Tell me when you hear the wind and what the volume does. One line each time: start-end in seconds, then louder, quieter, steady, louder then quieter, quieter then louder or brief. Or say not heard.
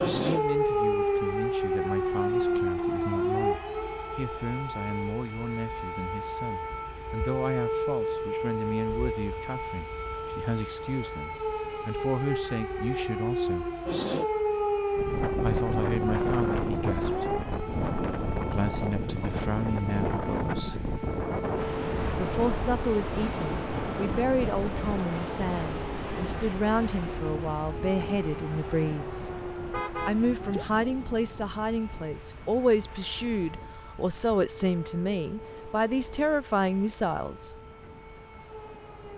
14.9-39.1 quieter.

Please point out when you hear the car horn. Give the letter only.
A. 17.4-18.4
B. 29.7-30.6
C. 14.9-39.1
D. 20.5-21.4
B.